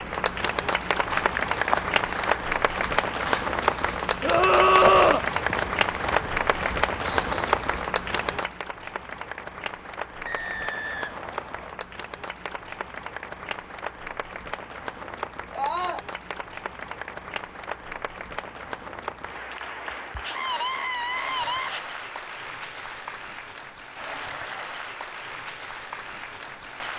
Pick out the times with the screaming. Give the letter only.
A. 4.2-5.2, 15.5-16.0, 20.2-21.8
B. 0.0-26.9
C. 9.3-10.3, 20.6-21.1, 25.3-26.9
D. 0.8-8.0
A.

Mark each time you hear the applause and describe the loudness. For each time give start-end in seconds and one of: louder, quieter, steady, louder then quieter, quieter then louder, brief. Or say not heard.
0.0-26.9 quieter.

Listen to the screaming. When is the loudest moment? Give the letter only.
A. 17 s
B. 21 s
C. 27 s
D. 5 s
D.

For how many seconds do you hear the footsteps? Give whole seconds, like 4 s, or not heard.
7 s.